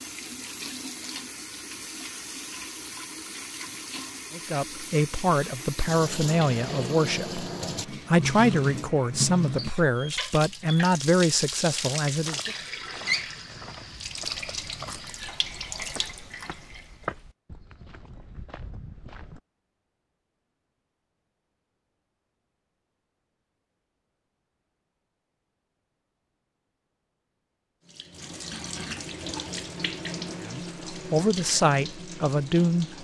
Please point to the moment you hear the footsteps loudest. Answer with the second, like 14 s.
17 s.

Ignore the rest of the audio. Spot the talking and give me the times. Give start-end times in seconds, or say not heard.
4.3-12.5, 30.4-33.0.